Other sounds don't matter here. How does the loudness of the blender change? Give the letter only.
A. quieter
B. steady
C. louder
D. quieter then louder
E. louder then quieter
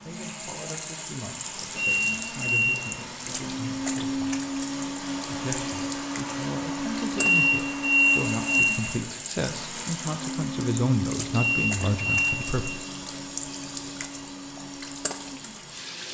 E.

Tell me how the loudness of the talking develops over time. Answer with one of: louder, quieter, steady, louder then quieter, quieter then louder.
louder.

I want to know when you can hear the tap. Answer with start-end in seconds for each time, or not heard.
0.0-16.0.